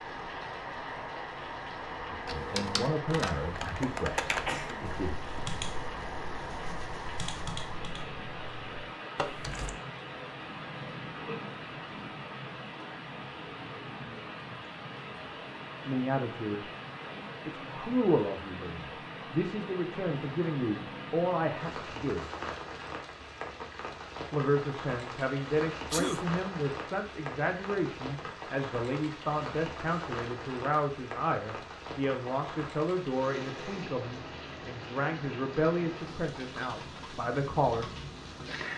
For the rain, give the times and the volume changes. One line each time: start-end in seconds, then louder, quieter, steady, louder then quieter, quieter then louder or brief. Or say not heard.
0.0-38.7 steady.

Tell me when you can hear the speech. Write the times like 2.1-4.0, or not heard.
2.1-5.2, 15.8-16.6, 17.4-22.2, 24.3-37.9.